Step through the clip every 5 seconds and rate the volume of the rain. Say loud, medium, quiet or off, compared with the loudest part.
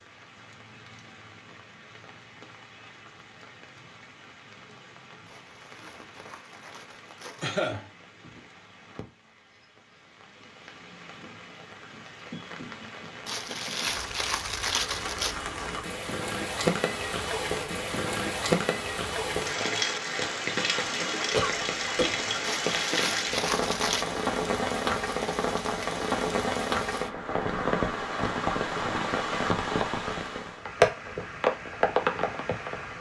quiet, quiet, quiet, loud, loud, loud, loud.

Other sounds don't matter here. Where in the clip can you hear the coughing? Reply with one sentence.
You can hear the coughing from 7.4 to 7.8 s and from 21.4 to 22.2 s.